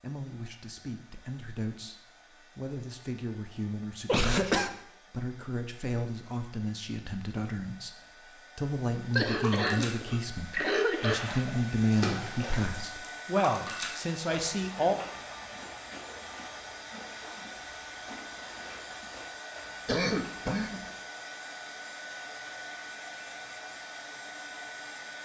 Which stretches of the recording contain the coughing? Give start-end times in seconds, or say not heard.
4.0-4.7, 9.2-11.2, 19.9-20.8.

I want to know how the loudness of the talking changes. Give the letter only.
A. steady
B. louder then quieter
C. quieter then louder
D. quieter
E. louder
E.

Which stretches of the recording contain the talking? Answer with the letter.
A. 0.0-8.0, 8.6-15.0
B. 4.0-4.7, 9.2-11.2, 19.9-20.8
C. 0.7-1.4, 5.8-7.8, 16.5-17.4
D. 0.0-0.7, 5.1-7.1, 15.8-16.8
A.